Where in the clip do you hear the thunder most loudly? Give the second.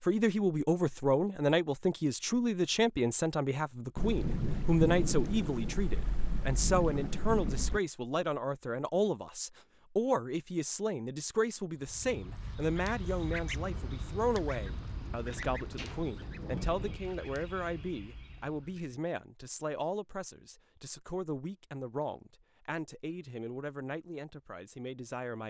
5 s.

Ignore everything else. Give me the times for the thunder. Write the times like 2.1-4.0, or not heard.
4.0-7.8, 13.7-16.9.